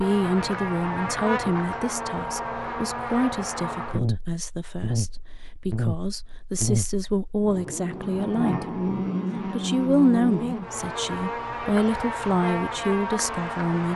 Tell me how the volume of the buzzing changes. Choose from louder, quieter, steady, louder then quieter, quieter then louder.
steady.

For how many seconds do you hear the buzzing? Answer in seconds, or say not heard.
14 s.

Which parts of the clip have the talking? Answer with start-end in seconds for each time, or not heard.
0.0-8.8, 9.4-13.9.